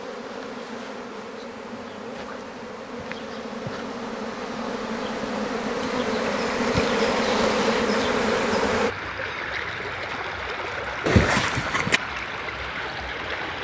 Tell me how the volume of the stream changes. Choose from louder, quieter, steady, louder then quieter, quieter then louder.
steady.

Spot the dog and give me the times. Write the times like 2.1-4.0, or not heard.
not heard.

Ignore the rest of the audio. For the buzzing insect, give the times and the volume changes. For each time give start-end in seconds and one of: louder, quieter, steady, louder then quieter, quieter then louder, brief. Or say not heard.
0.0-8.9 louder.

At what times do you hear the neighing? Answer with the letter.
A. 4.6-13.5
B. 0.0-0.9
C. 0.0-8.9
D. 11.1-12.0
D.